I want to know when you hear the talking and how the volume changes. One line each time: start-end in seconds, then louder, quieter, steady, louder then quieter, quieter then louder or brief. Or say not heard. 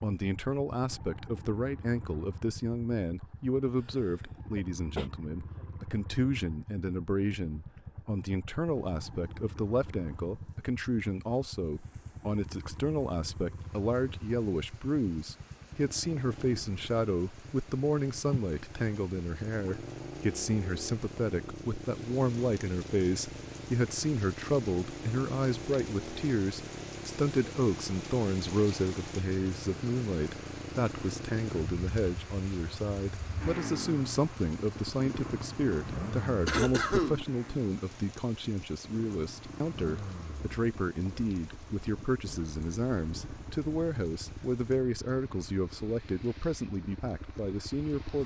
0.0-48.2 steady.